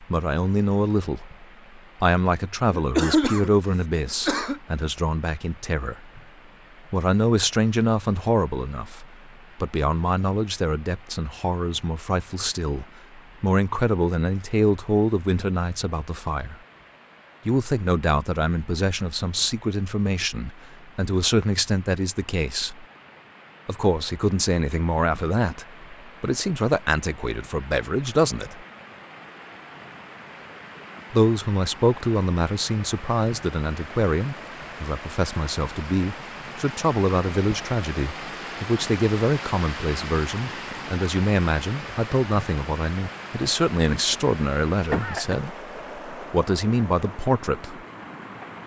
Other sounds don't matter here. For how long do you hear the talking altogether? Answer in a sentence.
You can hear the talking for 43 seconds altogether.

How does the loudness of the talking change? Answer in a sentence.
The volume of the talking stays about the same.